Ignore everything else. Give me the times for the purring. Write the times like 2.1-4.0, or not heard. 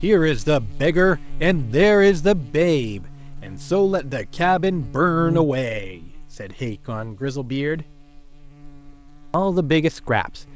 not heard.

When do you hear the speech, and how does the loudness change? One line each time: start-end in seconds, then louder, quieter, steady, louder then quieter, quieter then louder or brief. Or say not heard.
0.0-7.8 quieter
9.3-10.4 brief.